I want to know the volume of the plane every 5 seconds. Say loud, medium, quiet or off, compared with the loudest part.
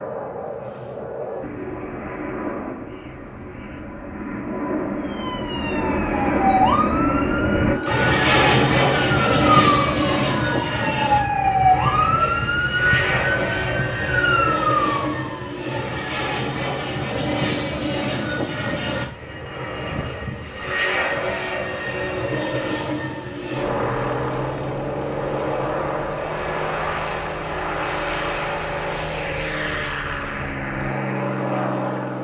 medium, loud, medium, medium, medium, medium, medium.